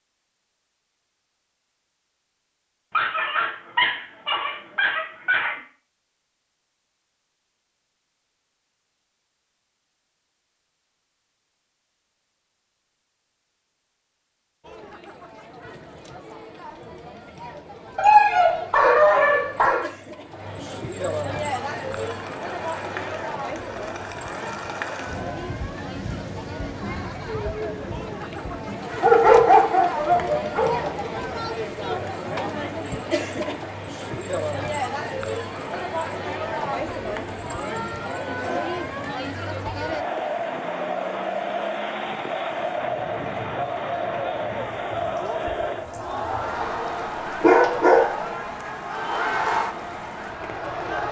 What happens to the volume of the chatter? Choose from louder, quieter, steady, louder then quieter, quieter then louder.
louder.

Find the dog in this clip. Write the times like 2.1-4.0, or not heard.
2.9-5.5, 17.9-19.9, 29.0-30.9, 46.6-48.4.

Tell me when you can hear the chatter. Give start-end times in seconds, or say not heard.
14.6-51.0.